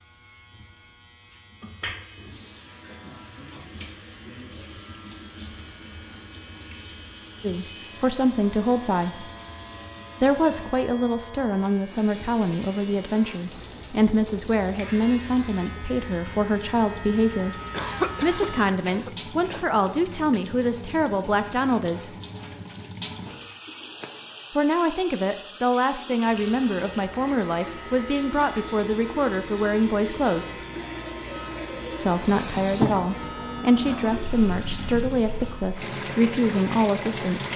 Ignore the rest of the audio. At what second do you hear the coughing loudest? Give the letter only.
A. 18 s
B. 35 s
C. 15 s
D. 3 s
A.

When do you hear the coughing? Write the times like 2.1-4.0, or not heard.
17.7-20.4.